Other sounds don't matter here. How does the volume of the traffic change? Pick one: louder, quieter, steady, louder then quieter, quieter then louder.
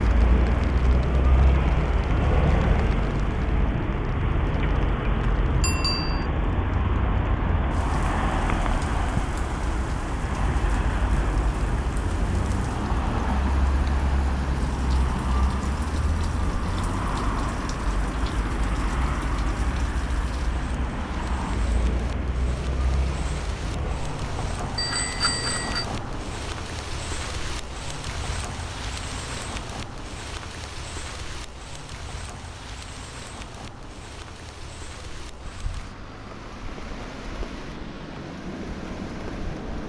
quieter.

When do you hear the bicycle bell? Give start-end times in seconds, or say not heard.
5.6-6.2, 24.8-25.9.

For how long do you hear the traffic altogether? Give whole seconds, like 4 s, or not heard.
40 s.